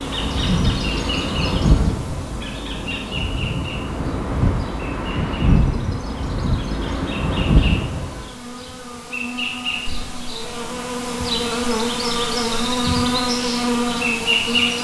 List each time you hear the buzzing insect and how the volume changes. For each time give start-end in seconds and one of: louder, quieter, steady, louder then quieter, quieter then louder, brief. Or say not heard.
0.0-14.7 quieter then louder.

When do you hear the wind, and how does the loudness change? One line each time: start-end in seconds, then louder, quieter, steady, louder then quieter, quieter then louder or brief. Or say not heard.
0.0-8.3 quieter then louder.